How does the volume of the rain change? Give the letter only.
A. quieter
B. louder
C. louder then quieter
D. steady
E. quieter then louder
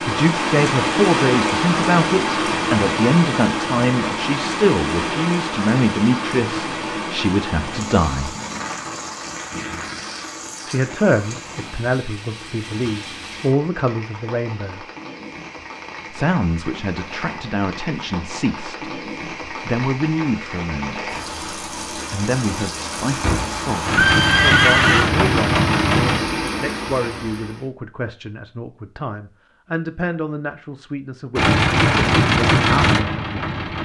E.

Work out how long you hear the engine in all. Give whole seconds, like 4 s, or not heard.
5 s.